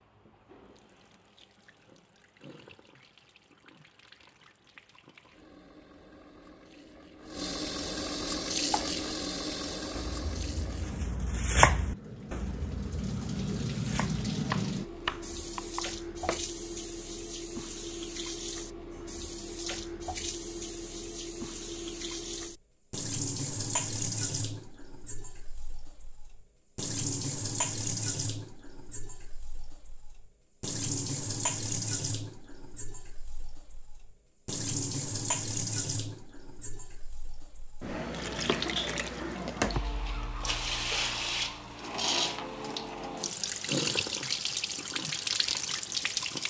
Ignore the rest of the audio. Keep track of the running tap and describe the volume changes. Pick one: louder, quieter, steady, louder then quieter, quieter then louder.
louder.